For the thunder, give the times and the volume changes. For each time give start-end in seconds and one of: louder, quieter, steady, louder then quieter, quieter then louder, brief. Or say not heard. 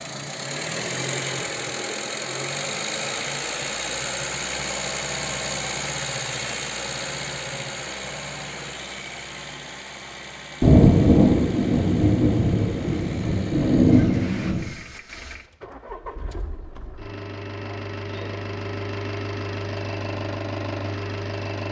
10.6-14.7 quieter then louder.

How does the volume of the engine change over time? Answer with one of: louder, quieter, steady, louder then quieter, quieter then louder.
quieter then louder.